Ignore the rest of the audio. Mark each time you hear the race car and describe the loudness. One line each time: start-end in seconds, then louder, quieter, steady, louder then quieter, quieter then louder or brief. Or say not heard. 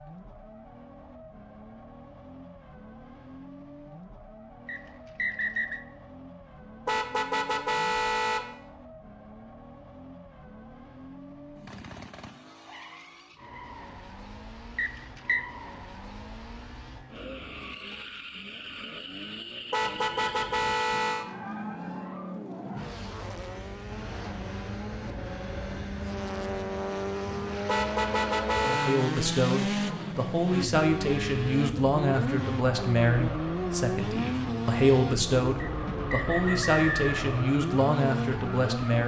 0.0-39.0 louder.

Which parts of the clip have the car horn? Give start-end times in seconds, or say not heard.
6.8-8.4, 19.7-21.2, 27.6-29.1.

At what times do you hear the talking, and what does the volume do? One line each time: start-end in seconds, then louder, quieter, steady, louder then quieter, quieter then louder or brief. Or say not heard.
28.6-39.0 steady.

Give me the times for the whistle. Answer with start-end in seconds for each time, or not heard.
4.7-5.8, 14.8-15.4, 35.6-37.1.